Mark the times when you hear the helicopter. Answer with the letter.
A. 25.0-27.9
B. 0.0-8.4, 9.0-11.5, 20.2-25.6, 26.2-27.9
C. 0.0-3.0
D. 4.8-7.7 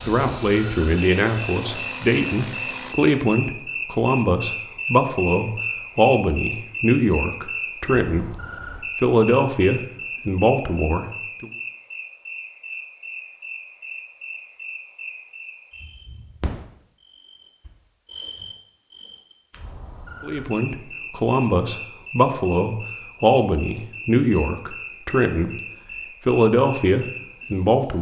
C.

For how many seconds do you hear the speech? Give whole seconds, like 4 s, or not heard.
18 s.